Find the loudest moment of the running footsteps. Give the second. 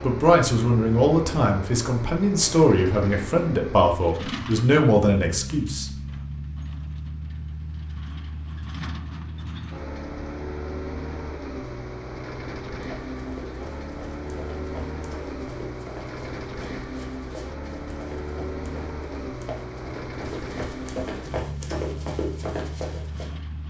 22 s.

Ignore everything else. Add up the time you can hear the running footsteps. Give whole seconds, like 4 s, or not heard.
10 s.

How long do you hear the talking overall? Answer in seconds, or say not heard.
6 s.